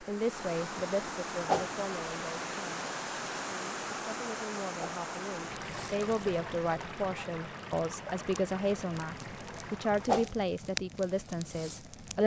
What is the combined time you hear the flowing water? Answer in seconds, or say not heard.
10 s.